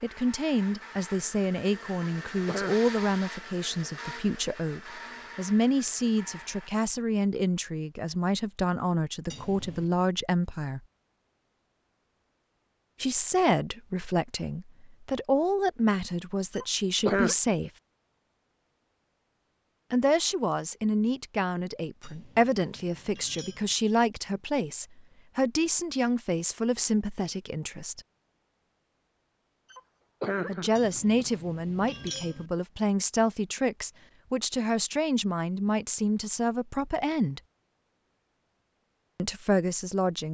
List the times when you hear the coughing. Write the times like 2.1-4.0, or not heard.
1.9-2.9, 16.5-17.4, 29.7-31.2.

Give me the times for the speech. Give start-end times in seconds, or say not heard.
0.0-10.8, 13.0-17.7, 19.9-28.0, 30.4-37.4, 39.1-40.2.